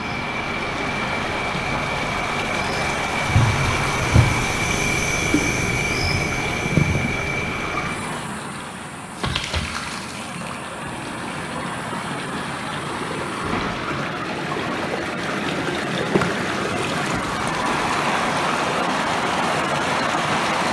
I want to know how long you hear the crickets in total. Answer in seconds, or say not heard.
14 s.